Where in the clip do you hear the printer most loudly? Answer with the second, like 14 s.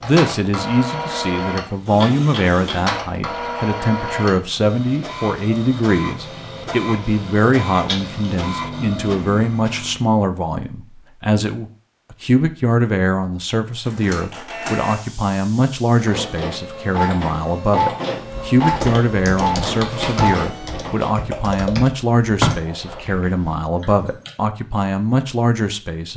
20 s.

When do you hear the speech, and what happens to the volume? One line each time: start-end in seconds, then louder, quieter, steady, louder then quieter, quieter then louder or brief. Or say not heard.
0.0-26.1 steady.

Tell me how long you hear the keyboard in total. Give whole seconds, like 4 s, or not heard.
6 s.